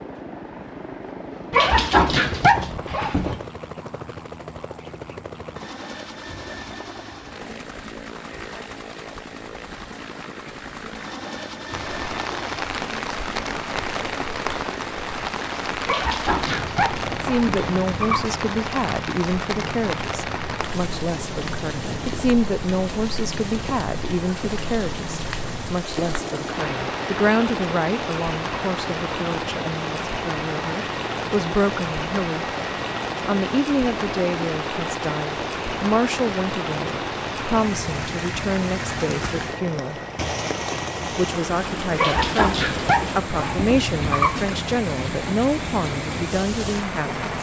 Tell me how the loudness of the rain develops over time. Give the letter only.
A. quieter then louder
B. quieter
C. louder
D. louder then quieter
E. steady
E.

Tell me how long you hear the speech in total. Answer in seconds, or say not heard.
28 s.